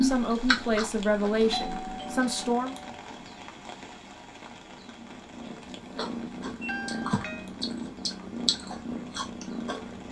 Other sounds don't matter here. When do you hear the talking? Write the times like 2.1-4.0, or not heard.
0.0-2.8.